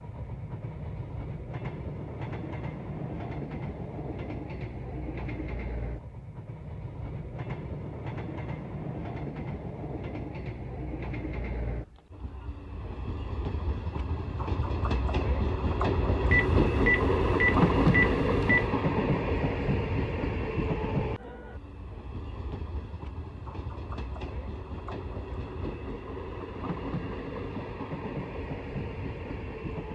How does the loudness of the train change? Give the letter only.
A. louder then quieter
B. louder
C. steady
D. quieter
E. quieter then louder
A.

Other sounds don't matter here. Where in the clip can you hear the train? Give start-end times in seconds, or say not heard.
0.0-29.9.